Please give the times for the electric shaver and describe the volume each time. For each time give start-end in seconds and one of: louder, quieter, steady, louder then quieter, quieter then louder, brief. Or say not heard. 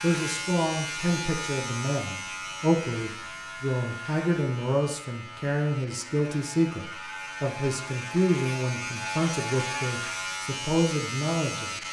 0.0-11.8 quieter then louder.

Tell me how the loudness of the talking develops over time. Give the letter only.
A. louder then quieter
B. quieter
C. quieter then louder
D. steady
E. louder
D.